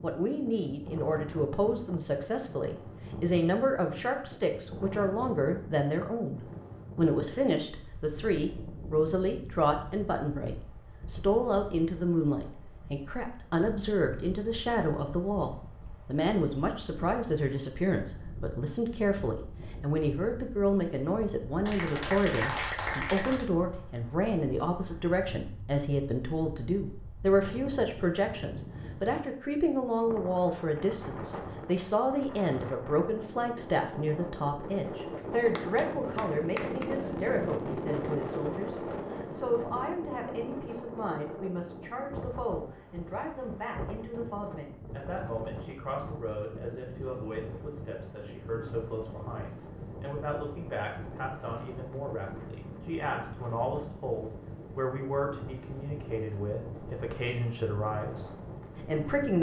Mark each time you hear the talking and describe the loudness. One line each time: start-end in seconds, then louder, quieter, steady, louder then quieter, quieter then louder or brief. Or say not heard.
0.0-59.3 quieter.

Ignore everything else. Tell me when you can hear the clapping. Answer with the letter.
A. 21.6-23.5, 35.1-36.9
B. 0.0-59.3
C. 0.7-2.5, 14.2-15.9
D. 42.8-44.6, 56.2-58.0
A.